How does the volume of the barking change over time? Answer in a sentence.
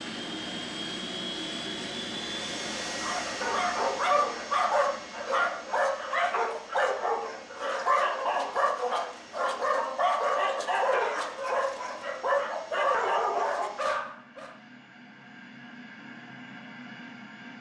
The loudness of the barking stays about the same.